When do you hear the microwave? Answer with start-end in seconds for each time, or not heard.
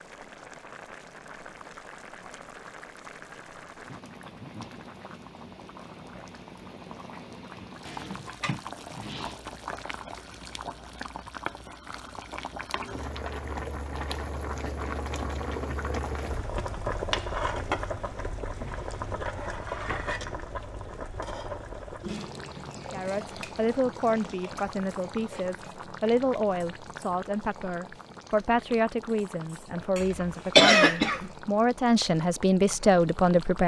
not heard.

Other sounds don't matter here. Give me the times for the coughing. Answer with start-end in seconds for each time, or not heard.
30.0-31.3.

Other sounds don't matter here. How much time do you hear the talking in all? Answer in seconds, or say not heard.
11 s.